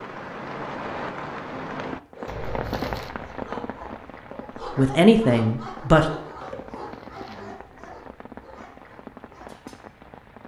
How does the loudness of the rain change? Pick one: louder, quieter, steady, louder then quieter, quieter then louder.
quieter.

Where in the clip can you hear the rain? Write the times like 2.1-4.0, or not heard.
0.0-10.4.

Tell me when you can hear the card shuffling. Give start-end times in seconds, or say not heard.
2.2-3.1, 6.7-7.5.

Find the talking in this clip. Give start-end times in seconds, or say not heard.
4.8-6.1.